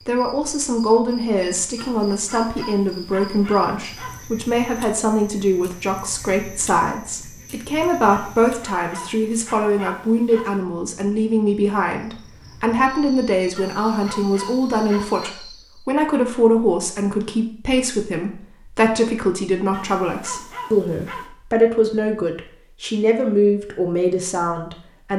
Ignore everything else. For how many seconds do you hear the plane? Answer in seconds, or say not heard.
not heard.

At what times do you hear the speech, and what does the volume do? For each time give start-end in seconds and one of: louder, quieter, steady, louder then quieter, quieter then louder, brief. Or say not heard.
0.1-25.1 steady.